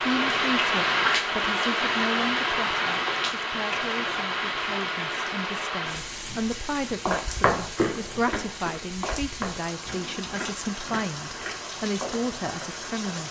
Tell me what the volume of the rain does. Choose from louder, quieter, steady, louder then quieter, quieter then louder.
quieter.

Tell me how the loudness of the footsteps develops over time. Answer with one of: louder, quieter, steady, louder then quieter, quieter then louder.
quieter.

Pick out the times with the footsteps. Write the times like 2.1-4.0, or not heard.
6.8-13.2.